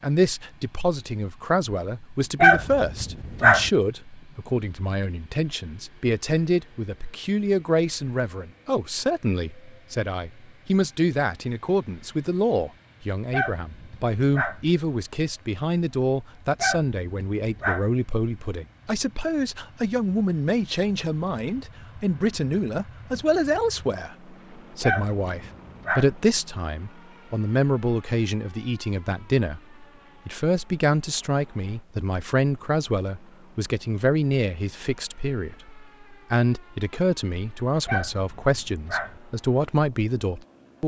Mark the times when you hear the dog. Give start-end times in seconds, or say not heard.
2.4-3.7, 13.3-14.7, 16.6-17.9, 24.8-26.1, 37.9-39.2.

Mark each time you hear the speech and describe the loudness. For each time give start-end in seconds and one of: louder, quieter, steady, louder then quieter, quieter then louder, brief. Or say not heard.
0.0-40.8 steady.